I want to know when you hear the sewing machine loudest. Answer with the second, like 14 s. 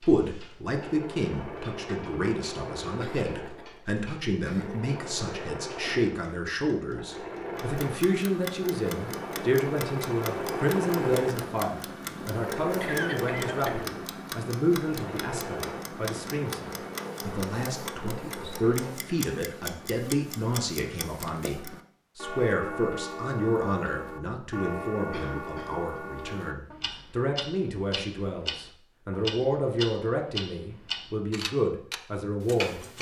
11 s.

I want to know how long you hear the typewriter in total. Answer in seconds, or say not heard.
not heard.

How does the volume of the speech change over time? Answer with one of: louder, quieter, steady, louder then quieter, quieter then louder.
steady.